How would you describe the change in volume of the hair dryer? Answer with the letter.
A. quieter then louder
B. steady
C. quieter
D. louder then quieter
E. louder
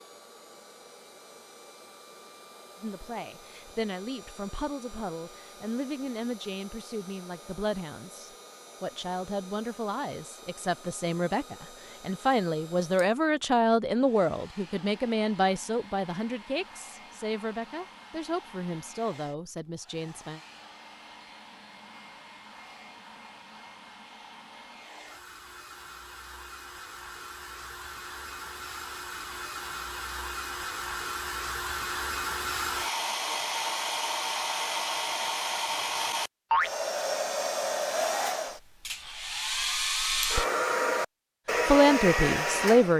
E.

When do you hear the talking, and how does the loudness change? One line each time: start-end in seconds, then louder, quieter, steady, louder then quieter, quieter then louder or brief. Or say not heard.
2.8-20.4 louder then quieter
41.6-42.9 brief.